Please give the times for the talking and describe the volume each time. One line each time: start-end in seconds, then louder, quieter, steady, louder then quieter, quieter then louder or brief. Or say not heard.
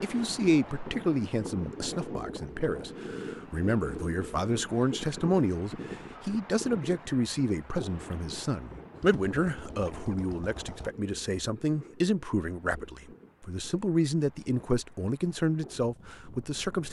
0.0-16.8 steady.